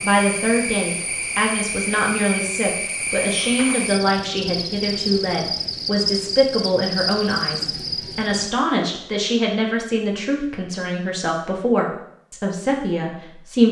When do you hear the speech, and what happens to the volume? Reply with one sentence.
You can hear the speech from 0.0 to 13.6 s, at a steady volume.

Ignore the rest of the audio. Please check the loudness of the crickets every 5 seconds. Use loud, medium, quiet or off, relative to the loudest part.
loud, loud, off.